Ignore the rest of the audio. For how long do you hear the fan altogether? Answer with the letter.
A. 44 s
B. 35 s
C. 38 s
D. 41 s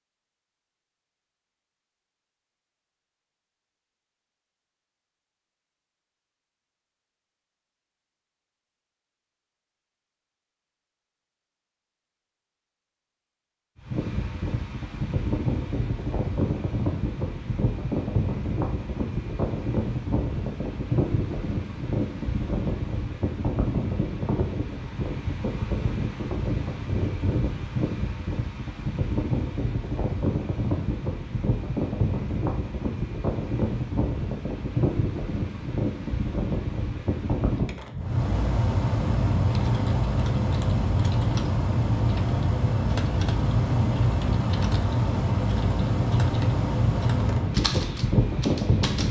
B.